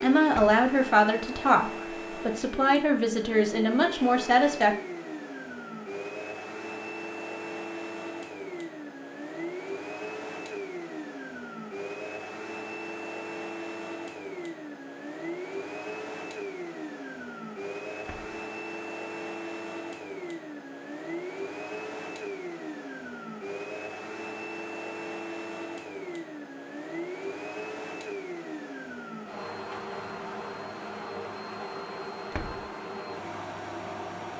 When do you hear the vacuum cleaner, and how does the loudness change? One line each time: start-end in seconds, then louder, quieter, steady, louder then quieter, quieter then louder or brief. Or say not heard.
0.0-34.3 steady.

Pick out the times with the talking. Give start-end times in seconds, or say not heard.
0.0-4.8.